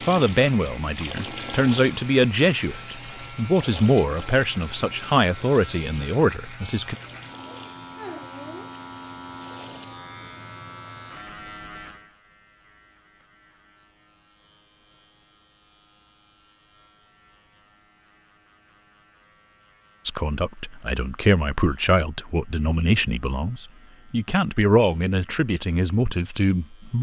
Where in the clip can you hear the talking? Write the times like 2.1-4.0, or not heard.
0.1-7.0, 20.1-26.9.